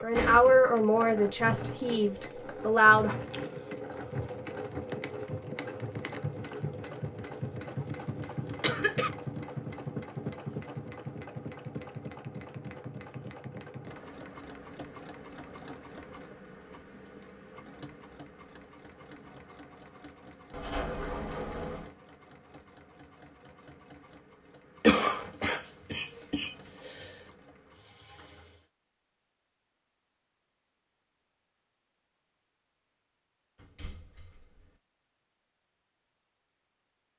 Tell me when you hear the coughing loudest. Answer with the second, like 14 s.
25 s.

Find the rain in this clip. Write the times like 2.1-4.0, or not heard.
not heard.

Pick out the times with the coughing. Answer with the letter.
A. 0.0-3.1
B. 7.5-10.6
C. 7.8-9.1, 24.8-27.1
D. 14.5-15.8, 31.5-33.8
C.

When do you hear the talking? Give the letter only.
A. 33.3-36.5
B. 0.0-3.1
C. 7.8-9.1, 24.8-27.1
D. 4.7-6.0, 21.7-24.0
B.